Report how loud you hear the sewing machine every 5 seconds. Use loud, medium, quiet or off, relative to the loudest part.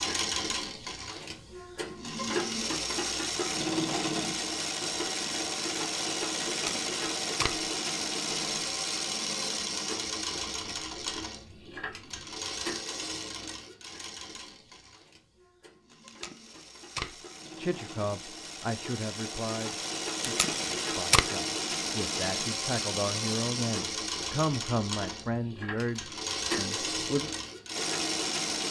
loud, loud, medium, medium, loud, loud.